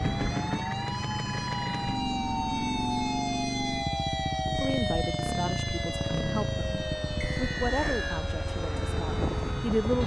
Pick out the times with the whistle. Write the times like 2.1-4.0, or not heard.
7.2-8.2.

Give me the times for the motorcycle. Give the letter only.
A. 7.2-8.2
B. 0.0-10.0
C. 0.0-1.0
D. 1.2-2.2
B.